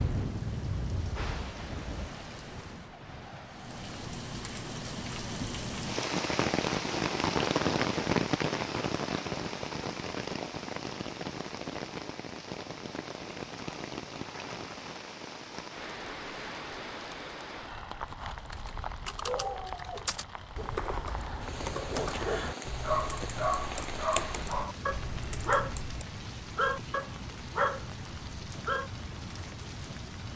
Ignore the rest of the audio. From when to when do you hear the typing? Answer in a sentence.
The typing can be heard from 18.1 to 26.1 s.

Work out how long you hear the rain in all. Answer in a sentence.
The rain can be heard for 30 seconds in total.